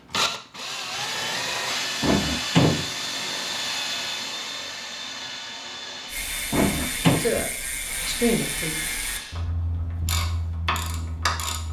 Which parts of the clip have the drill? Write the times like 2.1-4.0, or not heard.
0.0-9.4.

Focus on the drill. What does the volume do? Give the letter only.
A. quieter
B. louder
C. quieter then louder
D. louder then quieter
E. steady
A.